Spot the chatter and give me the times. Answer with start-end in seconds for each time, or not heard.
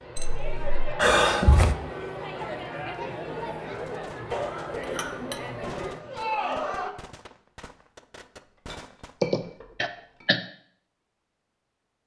0.0-7.0.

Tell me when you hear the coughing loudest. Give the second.
1 s.